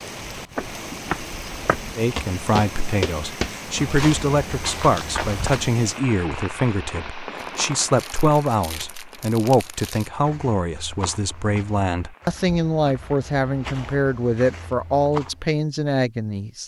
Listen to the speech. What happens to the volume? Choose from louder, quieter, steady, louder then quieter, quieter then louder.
steady.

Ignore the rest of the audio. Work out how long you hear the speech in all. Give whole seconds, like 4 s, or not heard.
15 s.